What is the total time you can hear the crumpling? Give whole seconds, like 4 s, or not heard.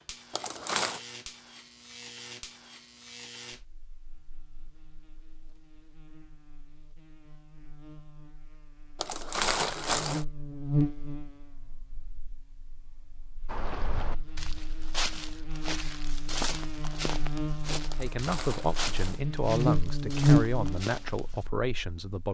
3 s.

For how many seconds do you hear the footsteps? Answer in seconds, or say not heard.
8 s.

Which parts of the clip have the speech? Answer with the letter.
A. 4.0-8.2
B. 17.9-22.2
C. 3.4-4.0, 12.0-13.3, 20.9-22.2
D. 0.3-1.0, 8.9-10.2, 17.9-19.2
B.